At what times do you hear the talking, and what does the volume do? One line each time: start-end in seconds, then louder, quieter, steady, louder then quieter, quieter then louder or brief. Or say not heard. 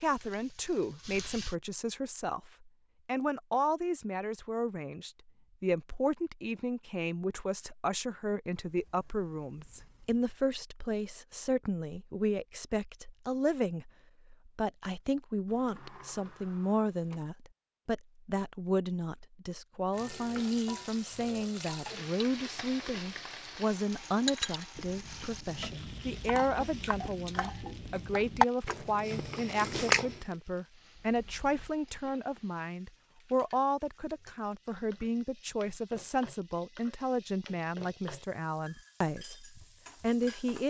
0.0-40.6 steady.